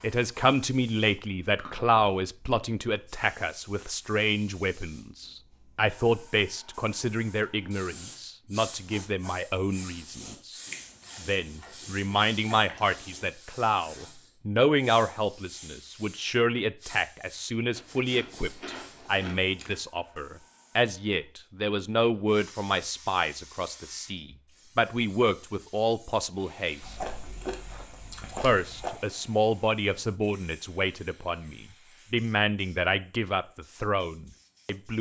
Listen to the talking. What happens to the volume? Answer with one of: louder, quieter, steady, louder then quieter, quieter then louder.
steady.